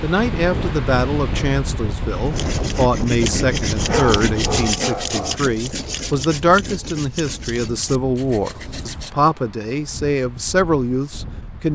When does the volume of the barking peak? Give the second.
4 s.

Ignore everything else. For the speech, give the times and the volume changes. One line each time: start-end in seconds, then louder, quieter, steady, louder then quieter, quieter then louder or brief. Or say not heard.
0.0-11.7 steady.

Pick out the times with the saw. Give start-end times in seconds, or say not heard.
2.2-9.2.